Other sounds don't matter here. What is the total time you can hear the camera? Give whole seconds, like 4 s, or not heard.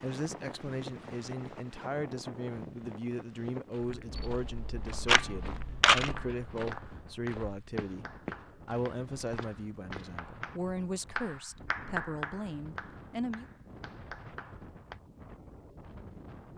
2 s.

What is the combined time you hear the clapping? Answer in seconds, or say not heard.
9 s.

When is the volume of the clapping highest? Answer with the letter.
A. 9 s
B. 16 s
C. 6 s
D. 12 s
D.